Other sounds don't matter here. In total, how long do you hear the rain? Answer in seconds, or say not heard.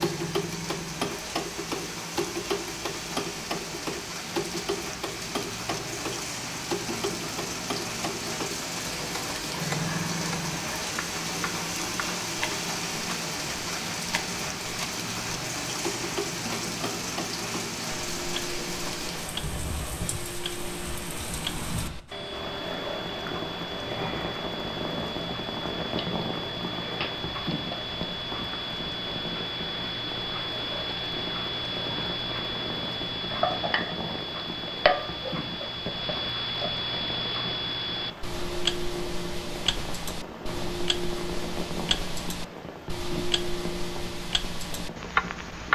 46 s.